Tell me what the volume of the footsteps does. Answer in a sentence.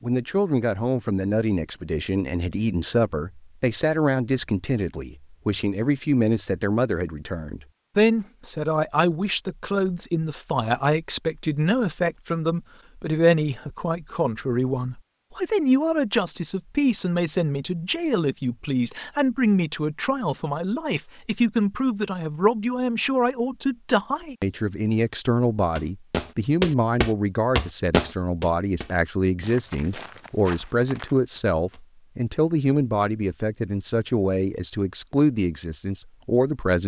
The loudness of the footsteps goes down.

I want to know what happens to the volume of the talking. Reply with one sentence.
The volume of the talking stays about the same.